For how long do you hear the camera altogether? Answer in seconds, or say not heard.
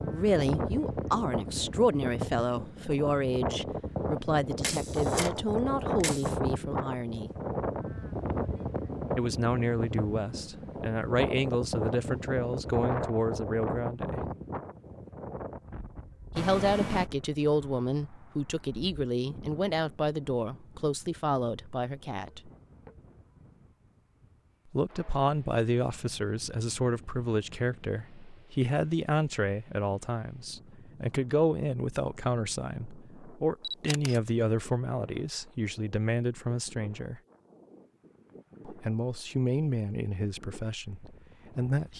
3 s.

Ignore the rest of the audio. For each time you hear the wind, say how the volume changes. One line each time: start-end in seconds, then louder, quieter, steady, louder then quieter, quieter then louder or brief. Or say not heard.
0.0-41.9 quieter.